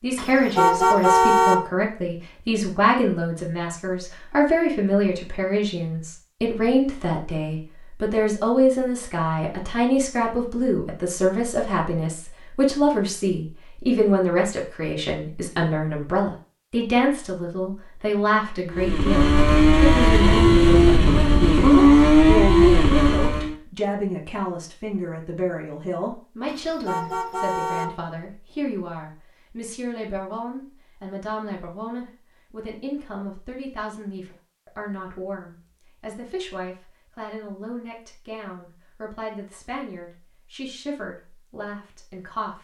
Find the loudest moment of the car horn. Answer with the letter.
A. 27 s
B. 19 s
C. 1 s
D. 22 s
C.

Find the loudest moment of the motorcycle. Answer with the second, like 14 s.
22 s.